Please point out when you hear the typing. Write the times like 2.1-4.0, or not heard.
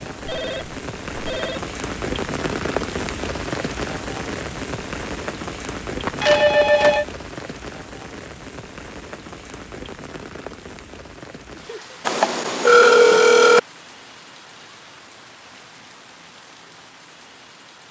not heard.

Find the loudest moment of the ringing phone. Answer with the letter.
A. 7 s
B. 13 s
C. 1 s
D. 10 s
B.